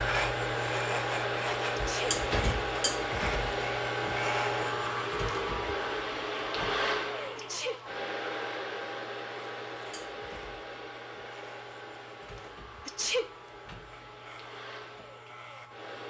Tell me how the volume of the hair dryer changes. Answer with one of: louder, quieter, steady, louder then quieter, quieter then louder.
quieter.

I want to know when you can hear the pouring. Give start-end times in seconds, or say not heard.
not heard.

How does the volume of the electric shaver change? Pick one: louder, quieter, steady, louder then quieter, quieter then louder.
quieter.